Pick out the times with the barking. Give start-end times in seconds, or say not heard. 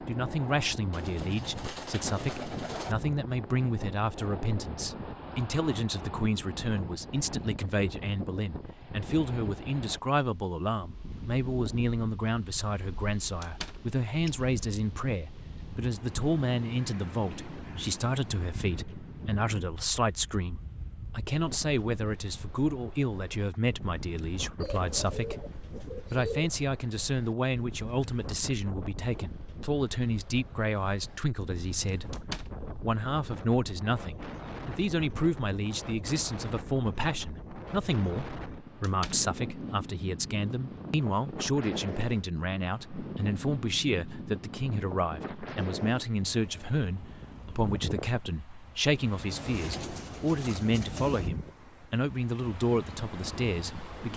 not heard.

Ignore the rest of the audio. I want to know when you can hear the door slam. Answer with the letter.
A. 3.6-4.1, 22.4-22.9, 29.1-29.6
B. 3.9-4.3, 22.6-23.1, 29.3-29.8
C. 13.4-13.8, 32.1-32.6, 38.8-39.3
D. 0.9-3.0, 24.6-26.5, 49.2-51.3
C.